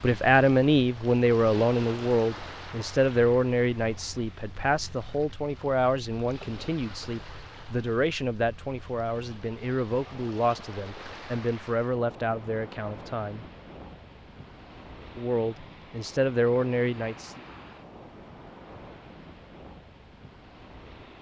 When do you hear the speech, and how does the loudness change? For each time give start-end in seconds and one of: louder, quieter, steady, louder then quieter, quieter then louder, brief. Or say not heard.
0.0-13.4 quieter
15.2-17.4 brief.